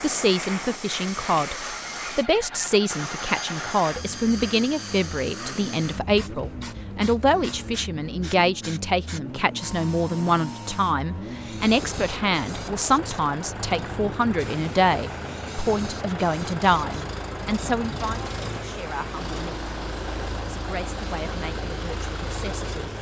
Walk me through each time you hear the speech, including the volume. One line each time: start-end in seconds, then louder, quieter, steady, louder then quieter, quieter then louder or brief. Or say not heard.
0.0-19.6 steady
20.4-22.9 brief.